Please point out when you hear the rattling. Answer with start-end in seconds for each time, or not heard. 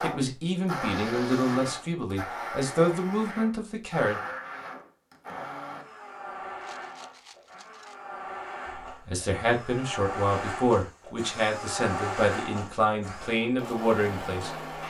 6.6-8.0.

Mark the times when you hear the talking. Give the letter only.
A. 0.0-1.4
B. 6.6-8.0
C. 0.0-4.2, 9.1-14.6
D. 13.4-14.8
C.